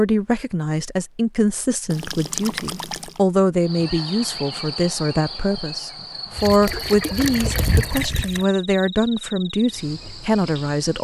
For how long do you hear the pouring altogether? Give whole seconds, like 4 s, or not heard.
3 s.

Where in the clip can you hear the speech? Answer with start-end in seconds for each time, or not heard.
0.0-10.9.